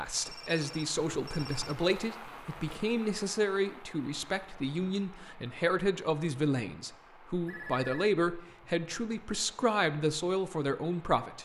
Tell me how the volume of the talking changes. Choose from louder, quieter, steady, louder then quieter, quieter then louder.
steady.